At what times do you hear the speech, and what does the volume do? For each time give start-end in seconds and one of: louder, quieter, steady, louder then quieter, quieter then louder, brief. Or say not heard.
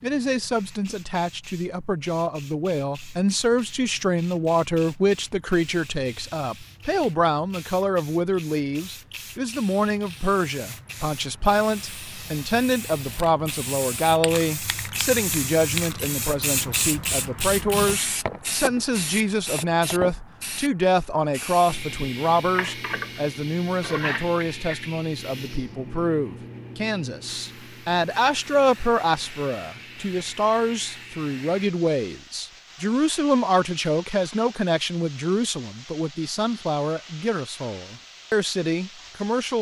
0.0-39.5 steady.